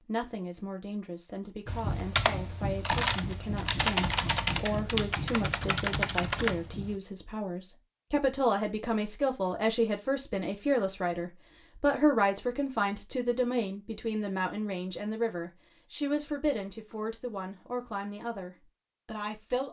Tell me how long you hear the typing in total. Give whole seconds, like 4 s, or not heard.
5 s.